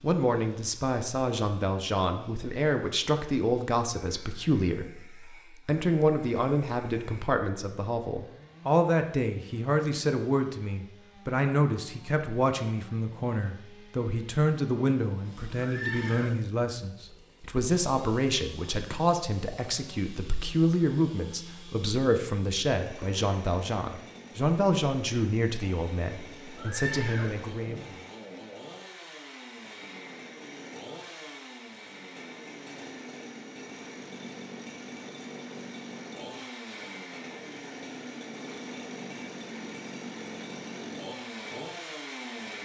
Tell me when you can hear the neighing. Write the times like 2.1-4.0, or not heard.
15.6-16.4, 26.6-27.9.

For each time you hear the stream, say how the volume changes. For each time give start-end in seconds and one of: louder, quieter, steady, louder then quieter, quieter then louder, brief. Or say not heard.
not heard.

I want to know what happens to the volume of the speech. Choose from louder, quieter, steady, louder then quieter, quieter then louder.
steady.